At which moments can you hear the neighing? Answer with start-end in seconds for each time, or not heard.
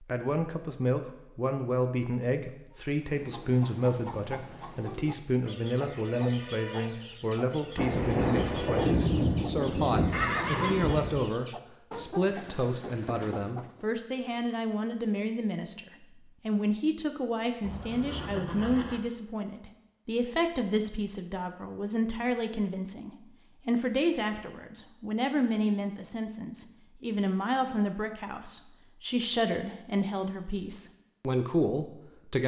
10.1-10.8, 17.6-19.0.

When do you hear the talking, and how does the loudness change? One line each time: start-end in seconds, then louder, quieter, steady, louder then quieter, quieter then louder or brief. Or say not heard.
0.0-32.4 steady.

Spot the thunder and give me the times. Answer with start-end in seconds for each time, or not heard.
7.8-11.3.